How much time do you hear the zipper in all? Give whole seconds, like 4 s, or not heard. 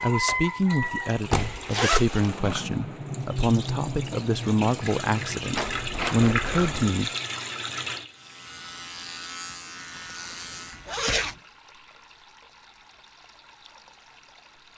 3 s.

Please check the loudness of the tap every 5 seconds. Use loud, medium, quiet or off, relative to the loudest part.
loud, loud, quiet.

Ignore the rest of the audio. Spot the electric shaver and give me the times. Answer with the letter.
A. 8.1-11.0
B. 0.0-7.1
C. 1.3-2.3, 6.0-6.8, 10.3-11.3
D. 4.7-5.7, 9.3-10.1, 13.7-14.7
A.